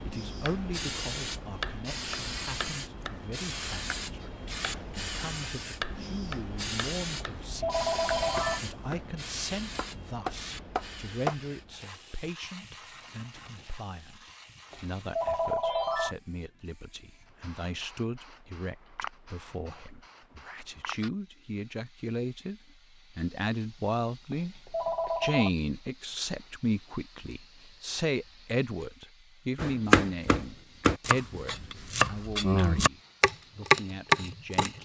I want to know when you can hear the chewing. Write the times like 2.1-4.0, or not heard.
not heard.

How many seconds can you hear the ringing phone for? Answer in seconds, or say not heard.
4 s.